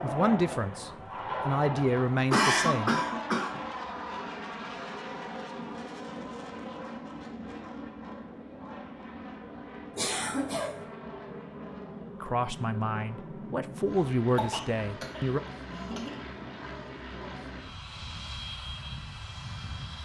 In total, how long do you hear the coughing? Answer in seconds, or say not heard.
4 s.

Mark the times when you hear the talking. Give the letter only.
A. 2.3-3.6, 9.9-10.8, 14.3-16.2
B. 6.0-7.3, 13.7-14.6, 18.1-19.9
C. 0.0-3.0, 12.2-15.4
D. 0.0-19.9
C.